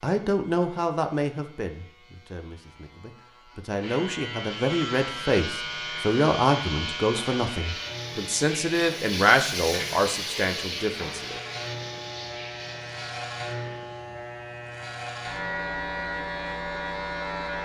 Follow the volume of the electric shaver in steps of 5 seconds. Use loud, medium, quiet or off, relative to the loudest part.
medium, loud, medium, loud.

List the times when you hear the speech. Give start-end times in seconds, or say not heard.
0.0-11.4.